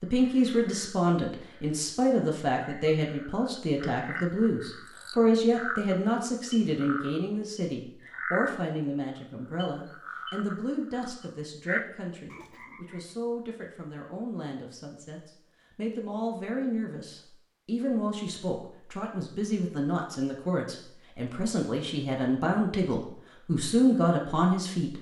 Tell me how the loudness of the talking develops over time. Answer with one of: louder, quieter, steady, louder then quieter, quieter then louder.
quieter then louder.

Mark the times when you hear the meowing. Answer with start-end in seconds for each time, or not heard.
not heard.